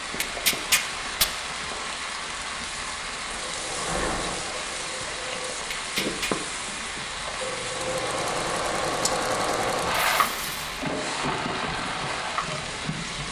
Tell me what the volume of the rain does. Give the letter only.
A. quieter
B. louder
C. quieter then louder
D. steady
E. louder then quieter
D.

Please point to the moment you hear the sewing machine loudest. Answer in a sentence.
The volume of the sewing machine peaks at 10 seconds.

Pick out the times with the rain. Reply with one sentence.
You can hear the rain from 0.0 to 13.2 s.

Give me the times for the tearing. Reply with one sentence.
You can hear the tearing from 0.2 to 1.2 s, from 5.7 to 6.3 s and from 9.9 to 10.8 s.